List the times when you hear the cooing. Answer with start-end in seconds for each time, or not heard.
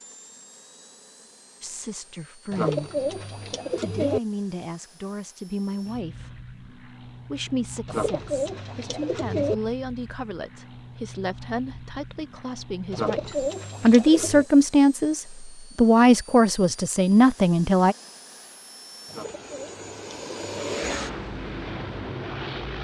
2.5-4.2, 7.8-9.6, 12.9-14.4, 19.1-20.8.